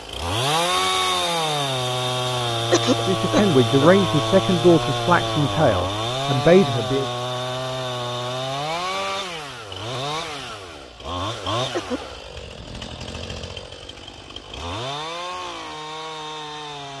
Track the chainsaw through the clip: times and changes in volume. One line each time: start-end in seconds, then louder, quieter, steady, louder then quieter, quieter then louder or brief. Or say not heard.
0.0-16.9 quieter.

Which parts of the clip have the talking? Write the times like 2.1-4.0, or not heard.
3.0-7.0.